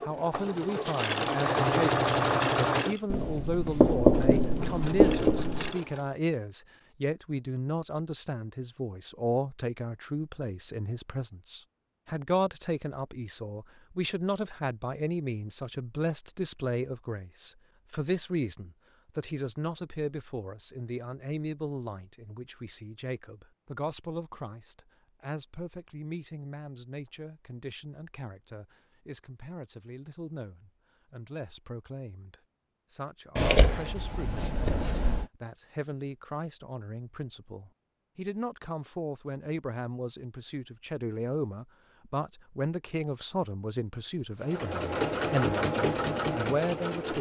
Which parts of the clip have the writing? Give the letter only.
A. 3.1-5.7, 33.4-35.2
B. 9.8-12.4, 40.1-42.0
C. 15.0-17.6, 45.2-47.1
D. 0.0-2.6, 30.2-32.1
A.